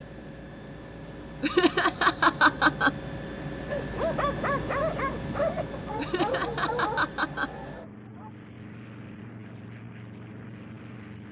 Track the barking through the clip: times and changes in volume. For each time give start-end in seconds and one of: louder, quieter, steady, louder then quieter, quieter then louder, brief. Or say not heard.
3.7-8.3 quieter.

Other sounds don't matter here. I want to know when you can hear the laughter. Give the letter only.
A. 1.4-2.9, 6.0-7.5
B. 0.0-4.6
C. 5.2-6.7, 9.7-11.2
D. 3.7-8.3
A.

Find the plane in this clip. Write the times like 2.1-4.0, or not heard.
0.0-11.2.